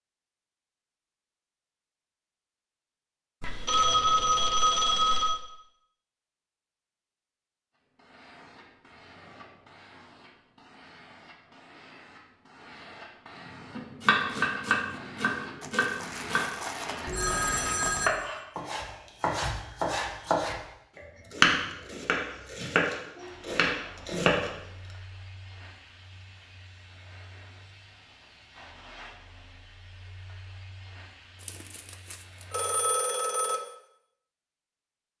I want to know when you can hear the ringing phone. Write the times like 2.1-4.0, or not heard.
3.4-5.4, 17.1-18.1, 32.5-33.6.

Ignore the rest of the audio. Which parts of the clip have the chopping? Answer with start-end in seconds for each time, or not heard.
13.8-17.4, 18.0-24.5.